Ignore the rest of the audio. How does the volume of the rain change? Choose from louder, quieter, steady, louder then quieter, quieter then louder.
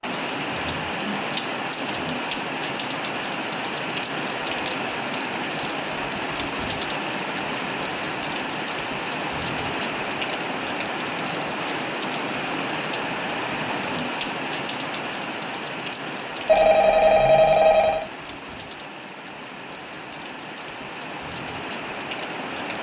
quieter.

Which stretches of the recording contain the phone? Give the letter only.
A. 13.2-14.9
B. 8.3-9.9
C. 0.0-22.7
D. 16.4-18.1
D.